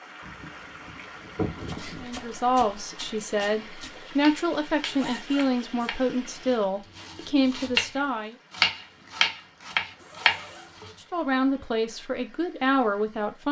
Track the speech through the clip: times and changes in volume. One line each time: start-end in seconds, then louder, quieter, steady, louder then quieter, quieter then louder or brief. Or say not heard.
2.0-8.3 steady
11.1-13.4 brief.